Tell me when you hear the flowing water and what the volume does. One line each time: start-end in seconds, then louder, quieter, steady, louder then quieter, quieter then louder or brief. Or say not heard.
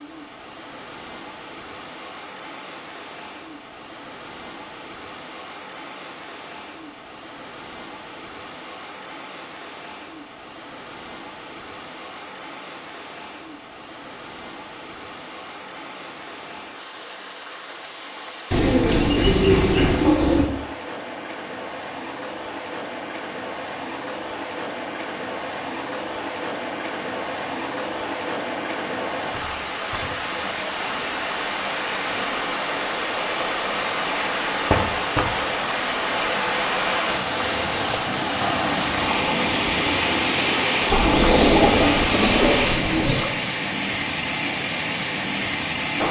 0.0-46.0 louder.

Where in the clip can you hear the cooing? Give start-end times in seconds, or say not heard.
18.5-20.4, 40.9-43.2.